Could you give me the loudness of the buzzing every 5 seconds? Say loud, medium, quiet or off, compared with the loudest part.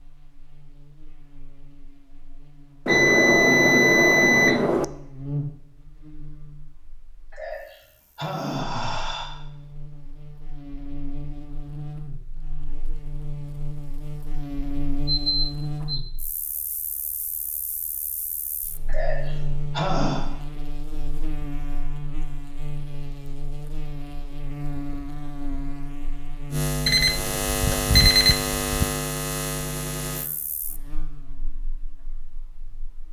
quiet, medium, medium, medium, medium, loud, quiet.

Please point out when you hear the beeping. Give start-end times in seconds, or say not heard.
2.9-4.8, 15.1-16.1, 26.9-28.9.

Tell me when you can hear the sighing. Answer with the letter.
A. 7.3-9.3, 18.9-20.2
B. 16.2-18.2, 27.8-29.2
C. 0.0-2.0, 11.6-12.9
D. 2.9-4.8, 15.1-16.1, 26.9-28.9
A.